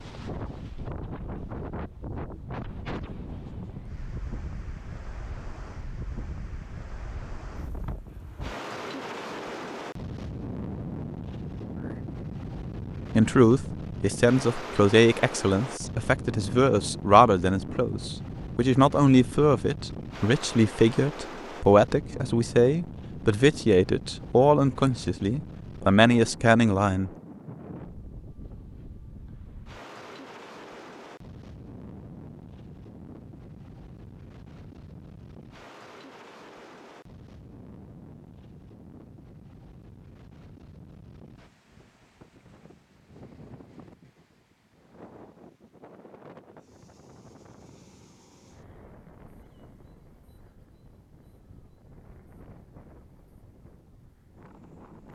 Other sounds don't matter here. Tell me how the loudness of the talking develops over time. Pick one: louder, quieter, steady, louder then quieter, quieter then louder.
steady.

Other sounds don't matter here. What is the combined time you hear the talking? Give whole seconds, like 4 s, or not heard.
14 s.